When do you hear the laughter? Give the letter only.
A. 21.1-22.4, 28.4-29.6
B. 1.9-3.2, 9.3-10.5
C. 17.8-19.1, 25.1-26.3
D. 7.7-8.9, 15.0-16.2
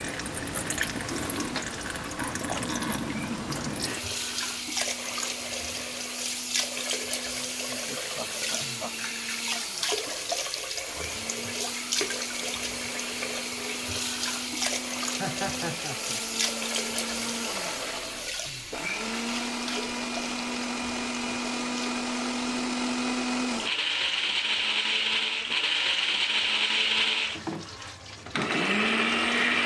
D.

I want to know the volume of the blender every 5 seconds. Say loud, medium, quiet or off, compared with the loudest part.
quiet, quiet, quiet, medium, loud, loud.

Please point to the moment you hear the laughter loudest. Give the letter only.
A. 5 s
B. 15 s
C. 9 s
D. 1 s
B.